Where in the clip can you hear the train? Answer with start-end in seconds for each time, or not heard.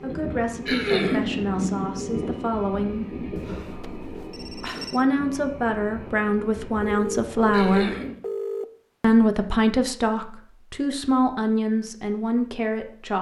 0.0-8.2.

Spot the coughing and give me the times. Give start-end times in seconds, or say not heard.
0.7-1.3, 7.5-8.2.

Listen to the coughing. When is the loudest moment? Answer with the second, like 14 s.
1 s.